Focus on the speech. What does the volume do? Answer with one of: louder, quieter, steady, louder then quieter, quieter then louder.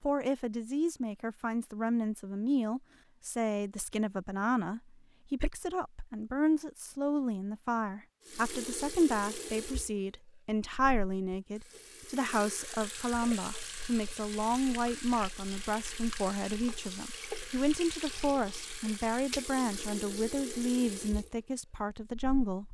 steady.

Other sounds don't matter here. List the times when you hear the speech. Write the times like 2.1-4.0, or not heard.
0.0-22.6.